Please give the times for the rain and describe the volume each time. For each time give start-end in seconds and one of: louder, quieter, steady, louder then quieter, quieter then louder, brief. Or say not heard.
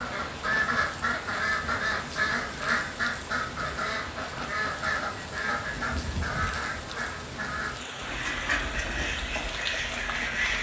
0.0-10.5 steady.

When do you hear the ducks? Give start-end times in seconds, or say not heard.
0.0-10.5.